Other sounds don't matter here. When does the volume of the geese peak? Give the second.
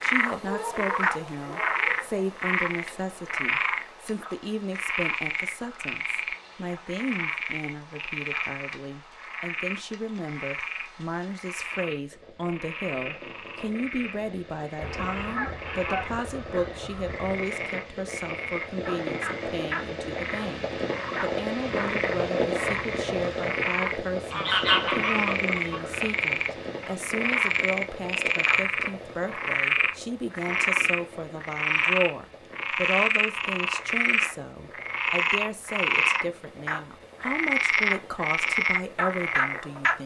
25 s.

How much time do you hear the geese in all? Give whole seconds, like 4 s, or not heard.
4 s.